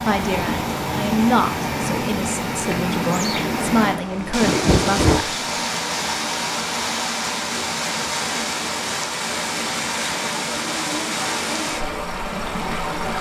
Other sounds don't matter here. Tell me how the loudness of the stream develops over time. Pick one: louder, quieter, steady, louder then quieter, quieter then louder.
steady.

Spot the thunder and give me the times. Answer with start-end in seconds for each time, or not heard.
3.9-5.2.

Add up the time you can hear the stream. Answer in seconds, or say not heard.
13 s.